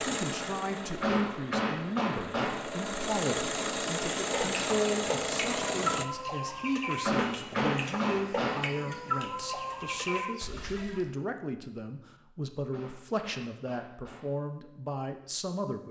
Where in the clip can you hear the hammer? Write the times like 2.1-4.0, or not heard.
1.0-2.6, 7.0-8.7, 12.7-14.3.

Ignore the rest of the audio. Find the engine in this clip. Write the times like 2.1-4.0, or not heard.
0.0-6.0.